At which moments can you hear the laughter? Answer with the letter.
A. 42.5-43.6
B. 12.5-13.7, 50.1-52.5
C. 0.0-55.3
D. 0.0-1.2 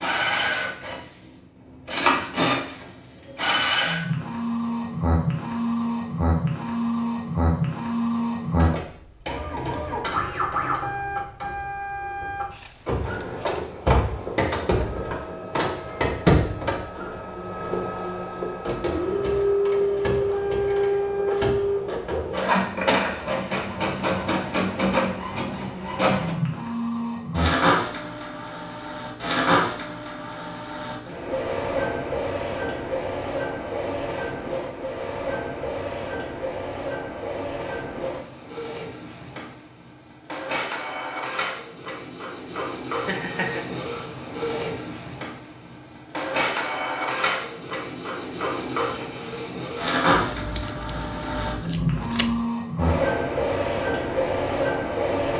A.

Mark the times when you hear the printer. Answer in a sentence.
You can hear the printer from 0.0 to 55.3 s.